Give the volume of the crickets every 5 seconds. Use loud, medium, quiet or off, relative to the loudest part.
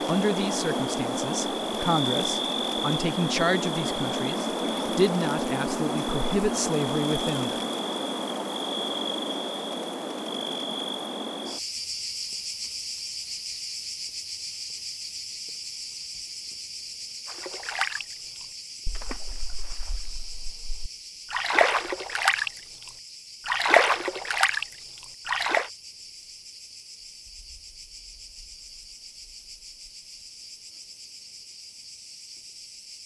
loud, loud, medium, medium, quiet, quiet, quiet.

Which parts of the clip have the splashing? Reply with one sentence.
The splashing can be heard from 17.2 to 24.6 s and from 25.2 to 25.7 s.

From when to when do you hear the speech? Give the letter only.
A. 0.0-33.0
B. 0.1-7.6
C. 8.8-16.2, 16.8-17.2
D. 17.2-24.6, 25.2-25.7
B.